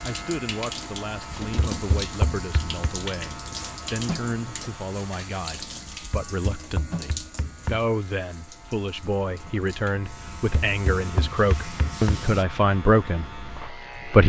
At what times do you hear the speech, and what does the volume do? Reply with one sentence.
The speech can be heard from 0.0 to 14.2 s, getting louder.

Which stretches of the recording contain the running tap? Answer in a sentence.
You can hear the running tap from 0.0 to 12.4 s.